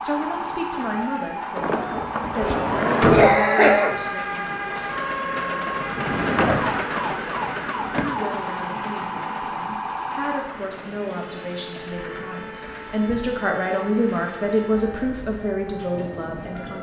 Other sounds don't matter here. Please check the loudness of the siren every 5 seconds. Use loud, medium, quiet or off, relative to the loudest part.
loud, loud, medium, medium.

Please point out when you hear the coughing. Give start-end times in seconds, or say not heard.
2.4-4.4.